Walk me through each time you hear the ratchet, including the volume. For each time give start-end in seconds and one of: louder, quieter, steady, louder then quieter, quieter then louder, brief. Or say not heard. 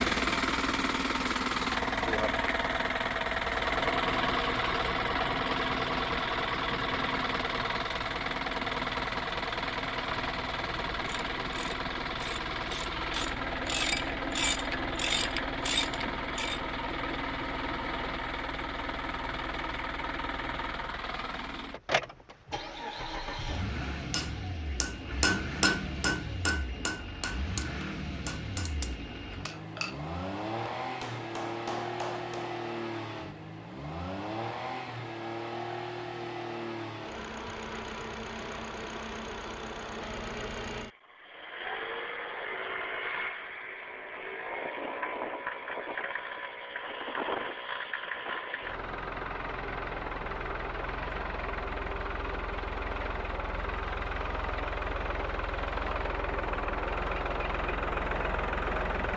11.1-16.6 louder.